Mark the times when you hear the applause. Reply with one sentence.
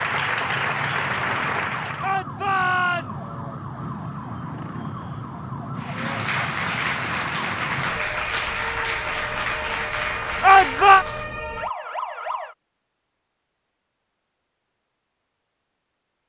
The applause can be heard from 0.0 to 2.1 s and from 5.8 to 11.3 s.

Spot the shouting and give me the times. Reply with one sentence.
You can hear the shouting from 2.0 to 3.4 s and from 10.4 to 11.1 s.